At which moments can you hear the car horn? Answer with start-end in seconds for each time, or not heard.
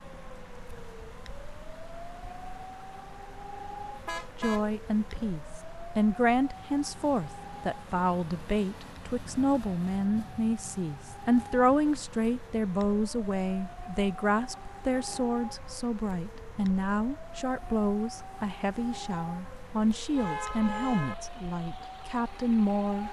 4.0-4.7, 20.1-21.1.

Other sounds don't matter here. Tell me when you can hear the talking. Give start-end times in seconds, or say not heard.
4.4-23.0.